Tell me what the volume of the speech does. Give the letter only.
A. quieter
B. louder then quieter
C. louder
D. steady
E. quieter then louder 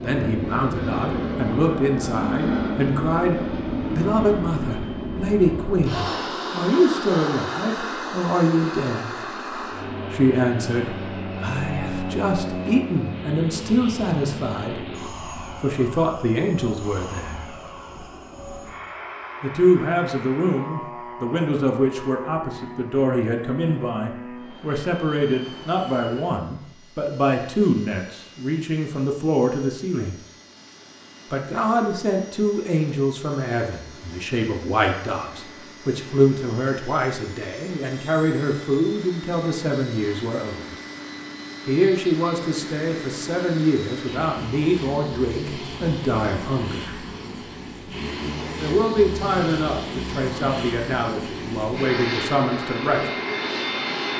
D.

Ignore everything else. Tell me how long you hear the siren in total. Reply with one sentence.
The siren can't be heard in this clip.